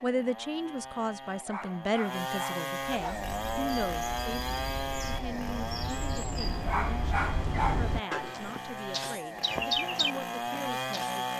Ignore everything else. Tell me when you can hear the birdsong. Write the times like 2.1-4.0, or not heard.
3.0-11.2.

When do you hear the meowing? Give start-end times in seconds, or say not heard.
not heard.